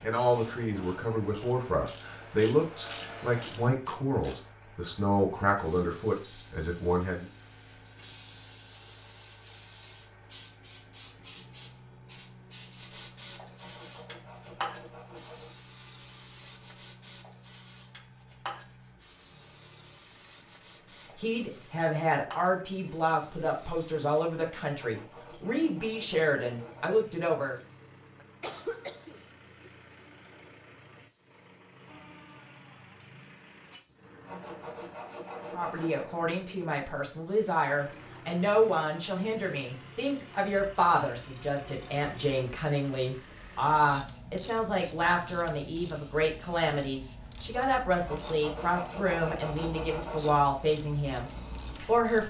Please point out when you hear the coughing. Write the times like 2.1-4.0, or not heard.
28.1-29.7.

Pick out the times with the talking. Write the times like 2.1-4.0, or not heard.
0.0-7.2, 21.1-27.6, 35.5-52.2.